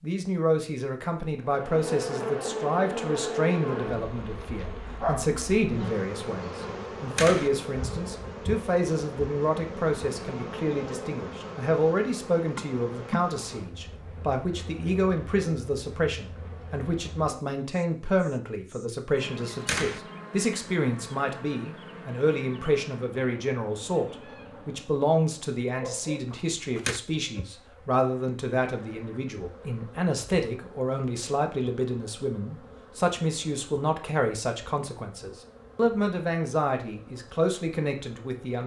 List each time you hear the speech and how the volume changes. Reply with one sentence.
The speech can be heard from 0.0 to 38.6 s, at a steady volume.